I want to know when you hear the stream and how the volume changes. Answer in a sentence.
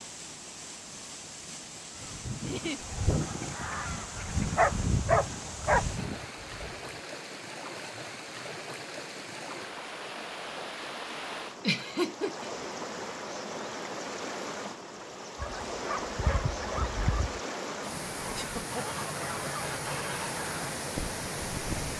The stream can be heard from 0.0 to 21.9 s, getting louder.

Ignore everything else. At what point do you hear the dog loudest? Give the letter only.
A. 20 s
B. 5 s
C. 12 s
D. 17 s
B.